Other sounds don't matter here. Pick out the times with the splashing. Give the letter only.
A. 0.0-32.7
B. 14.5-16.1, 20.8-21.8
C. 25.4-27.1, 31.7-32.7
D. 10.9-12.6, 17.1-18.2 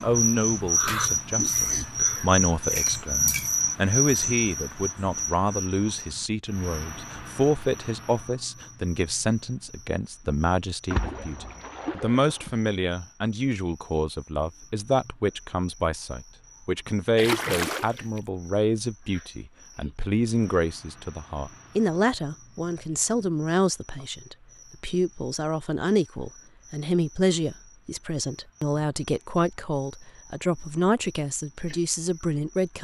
D.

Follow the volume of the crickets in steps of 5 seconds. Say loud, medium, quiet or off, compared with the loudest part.
loud, quiet, quiet, quiet, quiet, quiet, quiet.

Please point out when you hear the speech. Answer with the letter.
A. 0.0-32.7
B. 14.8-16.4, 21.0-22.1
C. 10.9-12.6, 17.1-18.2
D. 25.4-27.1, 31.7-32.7
A.